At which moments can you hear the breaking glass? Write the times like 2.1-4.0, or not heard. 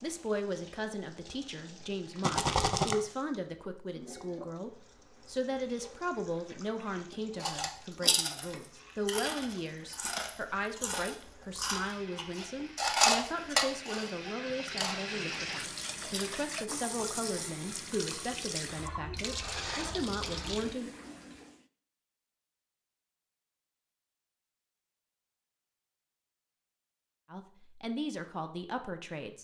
not heard.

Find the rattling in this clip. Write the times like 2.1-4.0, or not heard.
2.2-3.0.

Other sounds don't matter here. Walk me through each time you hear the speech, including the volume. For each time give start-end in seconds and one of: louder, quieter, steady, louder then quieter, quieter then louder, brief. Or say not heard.
0.0-20.9 steady
27.3-29.3 brief.